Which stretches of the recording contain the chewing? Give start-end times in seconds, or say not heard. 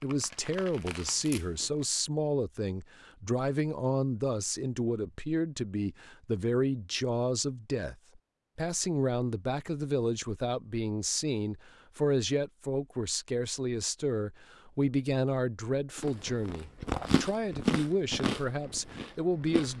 0.0-1.9, 15.9-19.7.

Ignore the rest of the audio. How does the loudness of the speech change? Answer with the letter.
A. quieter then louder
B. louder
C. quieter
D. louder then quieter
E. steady
E.